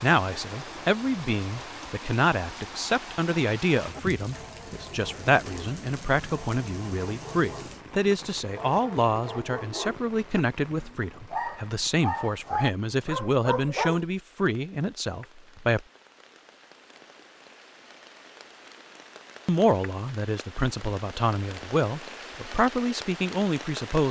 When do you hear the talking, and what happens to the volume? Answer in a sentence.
You can hear the talking from 0.0 to 15.8 s, at a steady volume; and from 19.4 to 24.0 s, getting louder.